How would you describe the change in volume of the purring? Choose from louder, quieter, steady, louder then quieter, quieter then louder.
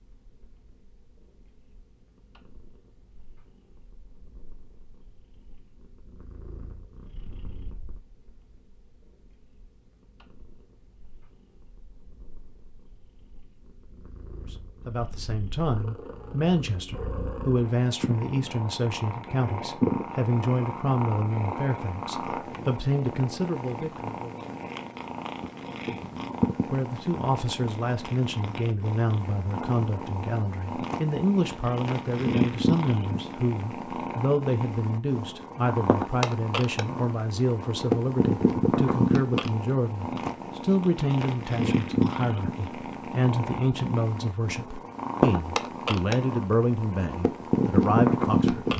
louder.